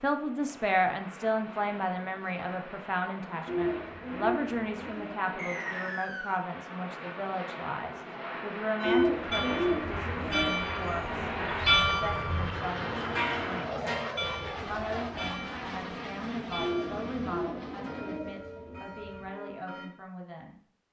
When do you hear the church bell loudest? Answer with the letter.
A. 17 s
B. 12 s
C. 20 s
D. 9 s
B.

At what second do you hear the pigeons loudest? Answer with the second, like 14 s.
9 s.